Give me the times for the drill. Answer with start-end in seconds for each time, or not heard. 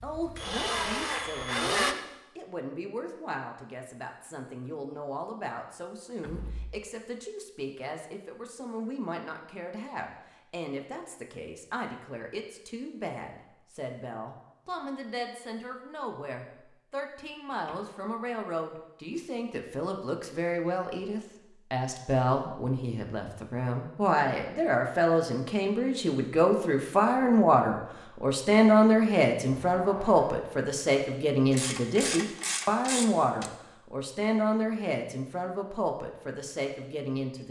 0.0-1.9.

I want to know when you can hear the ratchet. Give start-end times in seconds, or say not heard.
31.5-33.5.